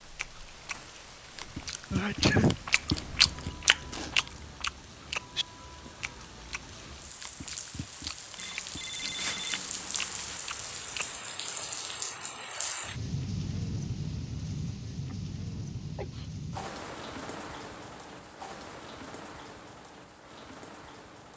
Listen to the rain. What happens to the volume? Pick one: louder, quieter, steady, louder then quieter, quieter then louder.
louder then quieter.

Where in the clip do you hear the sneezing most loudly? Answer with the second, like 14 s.
2 s.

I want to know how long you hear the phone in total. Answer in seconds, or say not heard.
2 s.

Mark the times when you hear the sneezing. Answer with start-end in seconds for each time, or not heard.
1.9-2.6, 15.1-16.3.